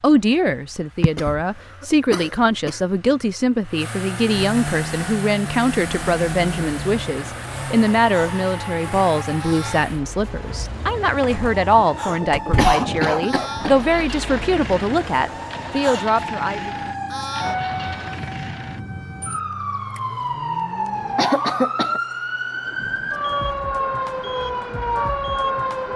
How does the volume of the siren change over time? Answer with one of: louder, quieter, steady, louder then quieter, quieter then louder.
louder.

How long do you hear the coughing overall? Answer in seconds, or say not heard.
4 s.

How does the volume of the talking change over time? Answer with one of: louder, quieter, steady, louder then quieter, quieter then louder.
steady.